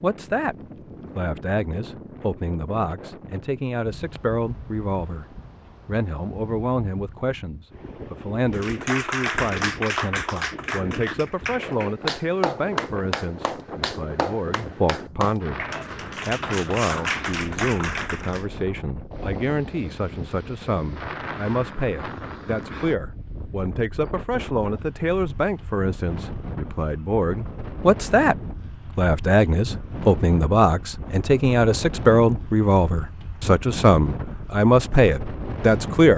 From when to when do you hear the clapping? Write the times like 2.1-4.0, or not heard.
8.5-18.4.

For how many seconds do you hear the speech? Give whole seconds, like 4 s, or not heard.
34 s.